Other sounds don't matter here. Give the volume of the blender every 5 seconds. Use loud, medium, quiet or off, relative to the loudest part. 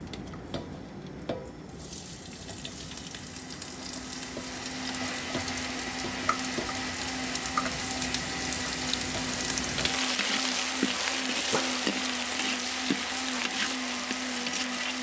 medium, loud, loud.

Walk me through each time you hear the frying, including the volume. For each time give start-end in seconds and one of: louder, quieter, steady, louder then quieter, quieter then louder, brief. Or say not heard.
0.0-14.9 louder.